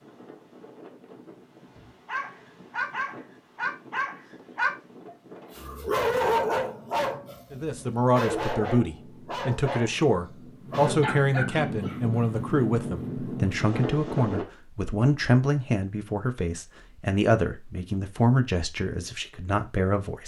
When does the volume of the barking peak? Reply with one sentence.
The loudest moment of the barking is at 6 seconds.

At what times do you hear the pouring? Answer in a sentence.
You can't hear the pouring here.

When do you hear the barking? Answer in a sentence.
The barking can be heard from 1.8 to 10.0 s and from 10.7 to 12.0 s.